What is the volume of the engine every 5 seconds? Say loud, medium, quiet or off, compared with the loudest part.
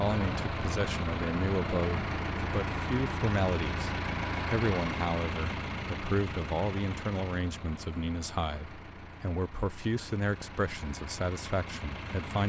loud, medium, medium.